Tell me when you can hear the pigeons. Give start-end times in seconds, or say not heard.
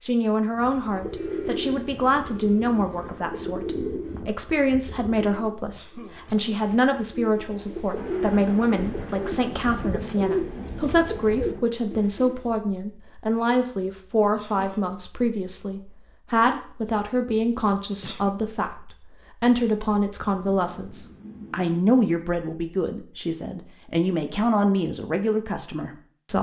0.6-12.4.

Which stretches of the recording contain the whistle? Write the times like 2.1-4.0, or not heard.
not heard.